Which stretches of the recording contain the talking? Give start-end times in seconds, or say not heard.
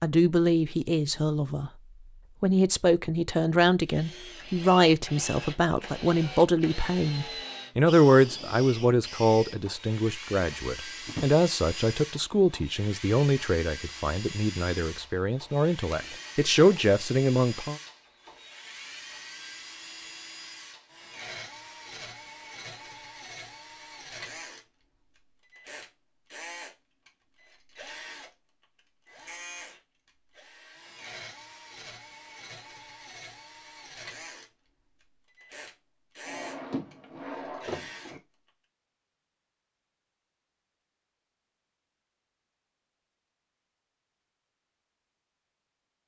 0.0-1.7, 2.4-17.8.